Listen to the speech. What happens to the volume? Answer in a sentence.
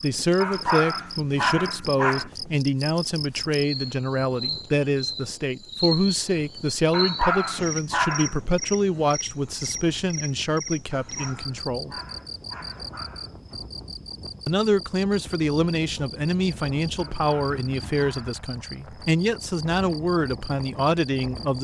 The volume of the speech stays about the same.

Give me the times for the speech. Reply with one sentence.
You can hear the speech from 0.0 to 11.9 s and from 14.4 to 21.5 s.